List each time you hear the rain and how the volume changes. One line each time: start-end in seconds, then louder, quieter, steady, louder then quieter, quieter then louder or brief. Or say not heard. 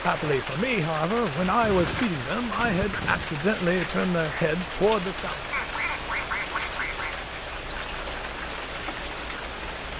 0.0-9.9 steady.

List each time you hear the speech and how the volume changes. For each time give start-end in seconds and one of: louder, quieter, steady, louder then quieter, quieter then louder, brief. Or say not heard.
0.0-5.4 steady.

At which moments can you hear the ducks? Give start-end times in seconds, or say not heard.
1.4-3.4, 5.5-7.2.